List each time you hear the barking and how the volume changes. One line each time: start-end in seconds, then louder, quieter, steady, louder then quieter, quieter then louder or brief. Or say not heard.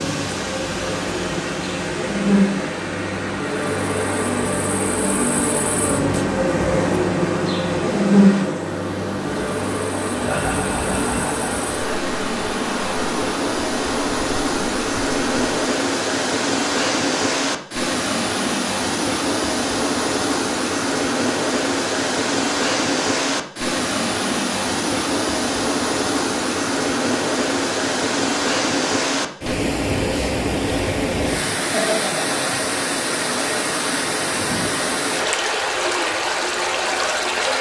not heard.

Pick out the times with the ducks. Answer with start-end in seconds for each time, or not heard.
not heard.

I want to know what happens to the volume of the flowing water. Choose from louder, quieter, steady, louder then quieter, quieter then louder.
louder.